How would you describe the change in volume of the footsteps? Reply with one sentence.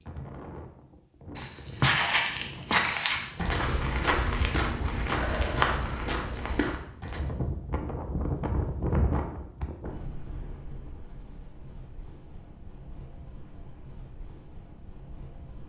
The loudness of the footsteps goes down.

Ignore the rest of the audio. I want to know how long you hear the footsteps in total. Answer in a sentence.
The footsteps can be heard for 6 seconds in total.